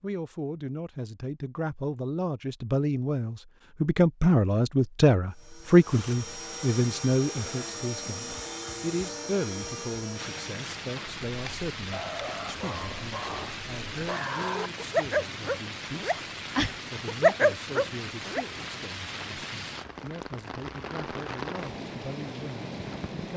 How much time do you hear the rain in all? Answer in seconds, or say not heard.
13 s.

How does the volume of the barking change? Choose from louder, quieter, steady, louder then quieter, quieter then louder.
louder.